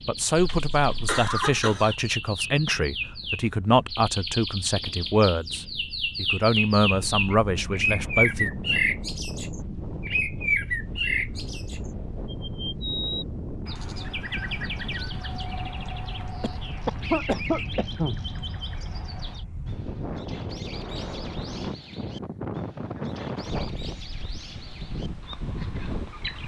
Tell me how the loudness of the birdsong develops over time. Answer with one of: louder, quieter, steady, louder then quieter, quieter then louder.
louder then quieter.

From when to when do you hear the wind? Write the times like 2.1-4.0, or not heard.
0.0-26.4.